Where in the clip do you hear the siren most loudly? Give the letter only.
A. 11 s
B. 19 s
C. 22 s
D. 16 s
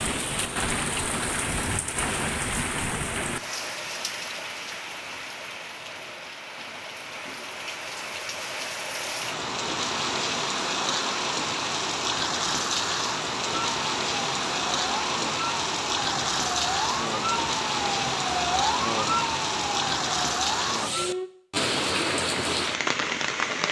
B.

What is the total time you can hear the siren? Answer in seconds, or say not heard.
8 s.